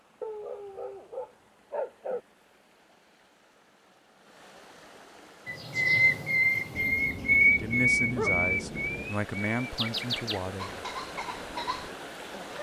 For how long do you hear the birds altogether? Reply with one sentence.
You can hear the birds for 7 seconds altogether.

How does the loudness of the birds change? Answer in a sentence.
The loudness of the birds goes down.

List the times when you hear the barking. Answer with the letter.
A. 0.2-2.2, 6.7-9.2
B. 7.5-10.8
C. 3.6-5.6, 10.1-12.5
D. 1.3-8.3
A.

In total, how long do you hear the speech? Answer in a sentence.
The speech can be heard for 3 seconds in total.